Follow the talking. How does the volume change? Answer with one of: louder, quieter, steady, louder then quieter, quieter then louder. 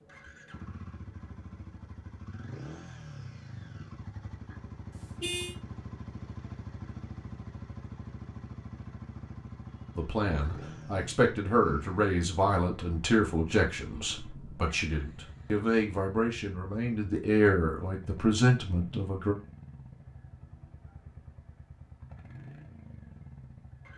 quieter then louder.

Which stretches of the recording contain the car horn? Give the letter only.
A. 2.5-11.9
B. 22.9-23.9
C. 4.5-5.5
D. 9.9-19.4
C.